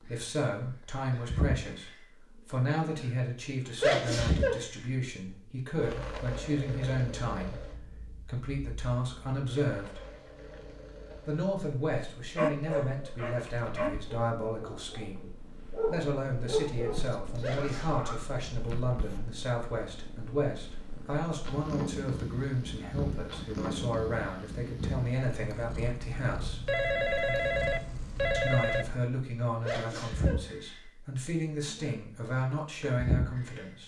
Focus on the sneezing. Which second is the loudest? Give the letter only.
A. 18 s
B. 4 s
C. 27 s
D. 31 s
B.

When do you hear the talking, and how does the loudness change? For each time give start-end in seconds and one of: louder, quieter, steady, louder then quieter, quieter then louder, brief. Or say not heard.
0.0-10.0 steady
11.2-26.8 steady
28.3-33.8 quieter then louder.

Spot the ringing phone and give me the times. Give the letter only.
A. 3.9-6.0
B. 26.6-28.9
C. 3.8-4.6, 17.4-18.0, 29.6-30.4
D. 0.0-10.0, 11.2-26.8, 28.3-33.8
B.